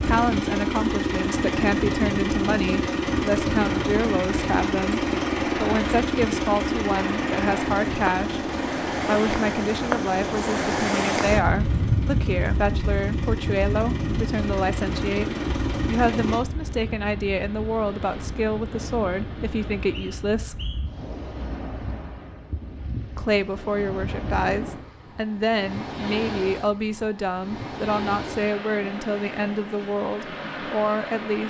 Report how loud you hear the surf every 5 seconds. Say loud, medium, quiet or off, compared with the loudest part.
medium, loud, loud, medium, medium, medium, medium.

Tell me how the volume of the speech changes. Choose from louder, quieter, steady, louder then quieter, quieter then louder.
steady.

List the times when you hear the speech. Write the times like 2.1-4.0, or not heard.
0.1-20.6, 23.1-31.4.